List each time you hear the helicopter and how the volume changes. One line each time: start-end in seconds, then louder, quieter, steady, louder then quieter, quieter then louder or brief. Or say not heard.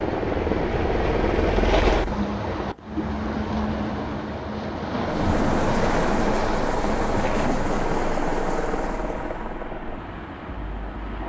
0.0-2.1 brief
5.0-11.2 quieter.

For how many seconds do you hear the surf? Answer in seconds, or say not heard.
11 s.